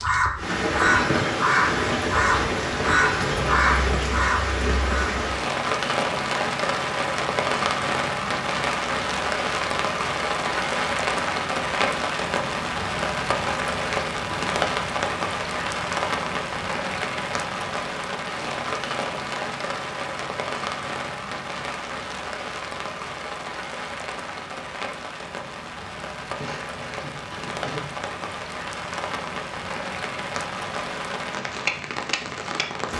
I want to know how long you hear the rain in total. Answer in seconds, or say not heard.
33 s.